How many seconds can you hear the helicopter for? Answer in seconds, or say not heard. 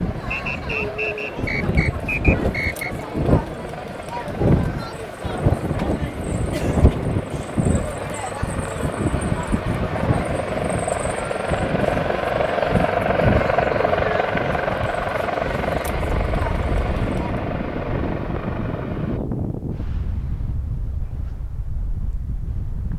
19 s.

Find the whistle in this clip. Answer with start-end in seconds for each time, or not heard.
0.3-3.0.